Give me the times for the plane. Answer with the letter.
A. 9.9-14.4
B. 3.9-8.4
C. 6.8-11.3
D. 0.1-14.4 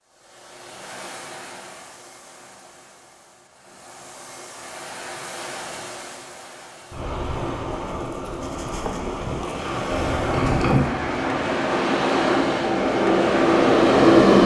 A.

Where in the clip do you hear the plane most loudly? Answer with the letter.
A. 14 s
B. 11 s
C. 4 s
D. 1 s
A.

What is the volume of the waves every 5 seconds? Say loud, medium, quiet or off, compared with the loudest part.
quiet, medium, loud.